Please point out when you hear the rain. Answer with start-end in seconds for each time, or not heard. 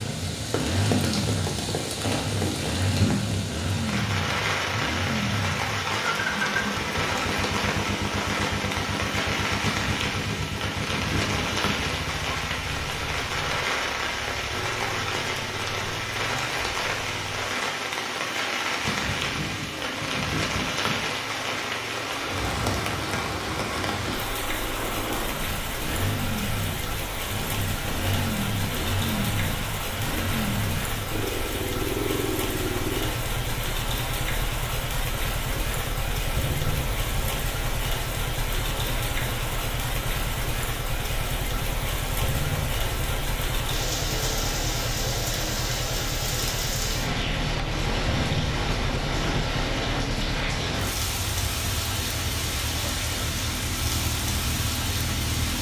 0.0-55.5.